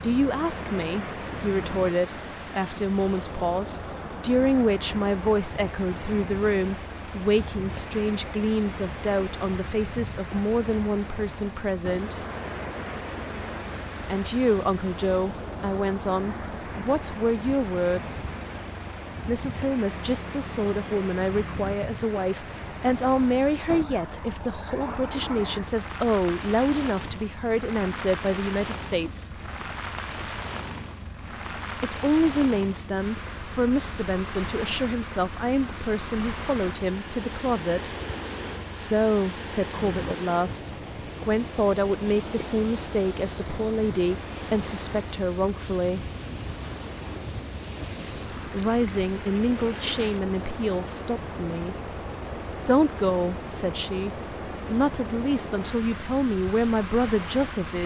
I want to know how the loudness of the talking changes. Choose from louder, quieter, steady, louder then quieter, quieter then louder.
steady.